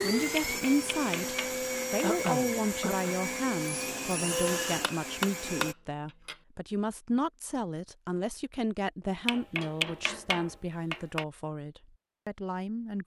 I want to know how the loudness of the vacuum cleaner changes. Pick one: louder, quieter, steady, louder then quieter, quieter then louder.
steady.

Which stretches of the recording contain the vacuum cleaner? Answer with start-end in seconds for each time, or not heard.
0.0-5.8.